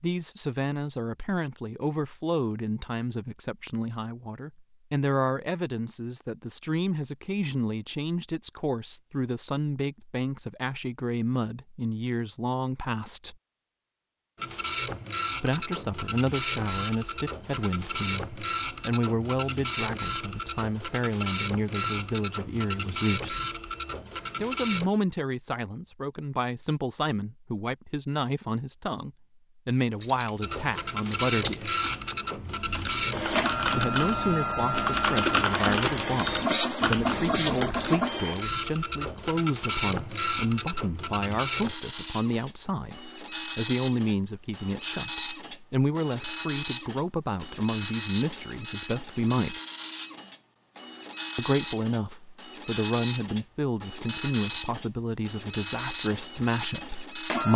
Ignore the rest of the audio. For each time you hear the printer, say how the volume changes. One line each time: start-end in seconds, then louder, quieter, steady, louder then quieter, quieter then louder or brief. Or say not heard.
14.4-24.9 steady
30.4-57.5 steady.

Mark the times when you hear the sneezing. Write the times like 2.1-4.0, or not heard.
not heard.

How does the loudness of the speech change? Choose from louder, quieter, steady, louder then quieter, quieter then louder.
steady.